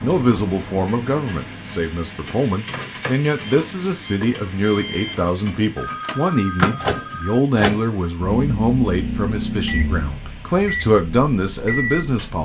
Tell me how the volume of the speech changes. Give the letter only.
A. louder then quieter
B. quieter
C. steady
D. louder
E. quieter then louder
C.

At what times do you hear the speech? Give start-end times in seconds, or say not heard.
0.0-12.4.